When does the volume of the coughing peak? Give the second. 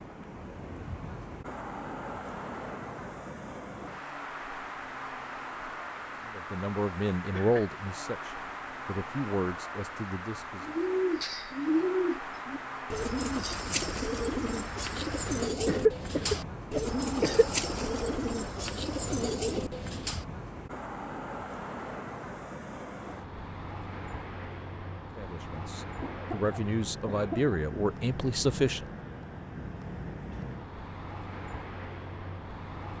16 s.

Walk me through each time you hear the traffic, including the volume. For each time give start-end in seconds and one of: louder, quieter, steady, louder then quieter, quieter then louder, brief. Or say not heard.
0.0-32.9 steady.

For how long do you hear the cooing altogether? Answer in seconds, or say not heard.
10 s.